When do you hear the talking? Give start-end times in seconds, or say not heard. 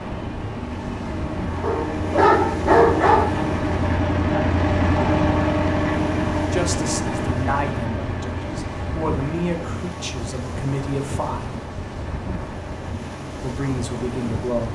6.5-11.5, 13.4-14.7.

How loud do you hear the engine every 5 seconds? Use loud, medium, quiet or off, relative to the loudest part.
loud, loud, quiet.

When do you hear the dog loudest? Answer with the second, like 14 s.
3 s.